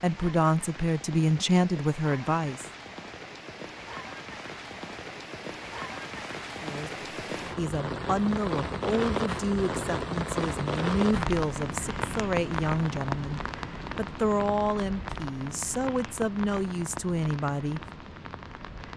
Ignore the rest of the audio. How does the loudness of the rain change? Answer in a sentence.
The loudness of the rain goes up, then down.